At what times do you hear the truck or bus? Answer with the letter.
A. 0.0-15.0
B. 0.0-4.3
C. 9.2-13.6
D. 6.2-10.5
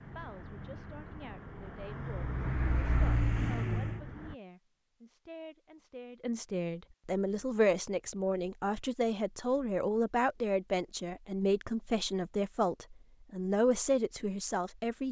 B.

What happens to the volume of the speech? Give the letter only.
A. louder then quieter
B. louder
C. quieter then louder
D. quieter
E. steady
B.